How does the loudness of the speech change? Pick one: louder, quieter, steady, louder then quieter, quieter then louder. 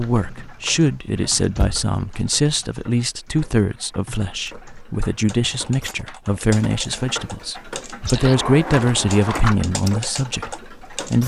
steady.